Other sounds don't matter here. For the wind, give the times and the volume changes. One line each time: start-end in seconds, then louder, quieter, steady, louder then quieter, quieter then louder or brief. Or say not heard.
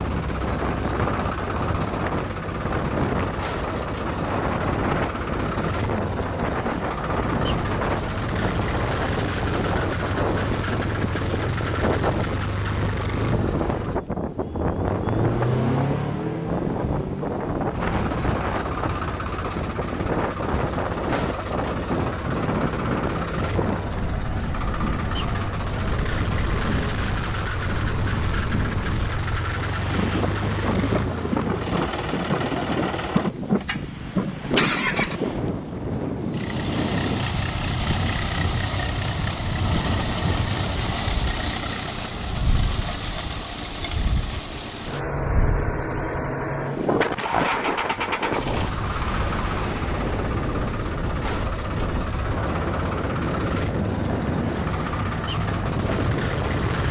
0.0-56.8 steady.